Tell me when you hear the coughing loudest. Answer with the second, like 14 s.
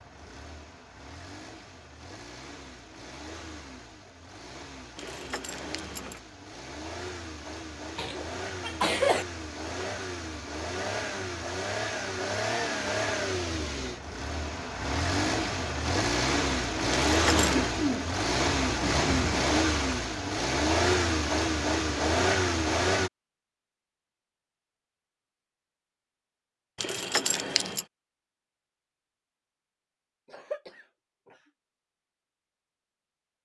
9 s.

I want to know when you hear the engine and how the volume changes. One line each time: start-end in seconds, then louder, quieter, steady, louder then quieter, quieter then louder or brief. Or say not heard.
0.0-23.1 louder.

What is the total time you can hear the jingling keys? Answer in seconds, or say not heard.
3 s.